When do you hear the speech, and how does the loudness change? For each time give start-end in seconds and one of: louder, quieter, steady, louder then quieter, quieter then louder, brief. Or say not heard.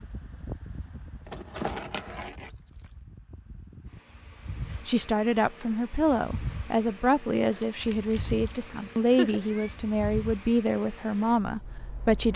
4.8-12.3 steady.